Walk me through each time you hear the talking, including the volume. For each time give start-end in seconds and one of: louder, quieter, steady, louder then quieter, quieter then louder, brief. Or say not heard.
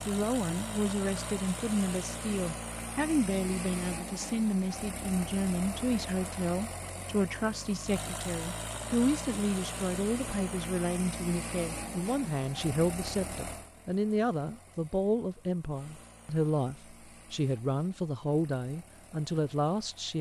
0.1-20.1 steady.